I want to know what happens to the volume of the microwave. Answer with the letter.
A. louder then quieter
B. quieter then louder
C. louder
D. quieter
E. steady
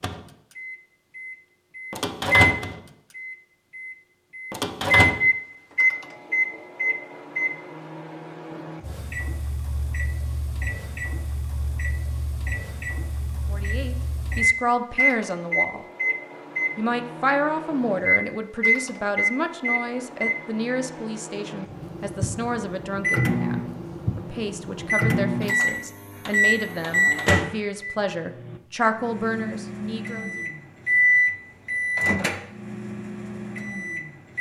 B.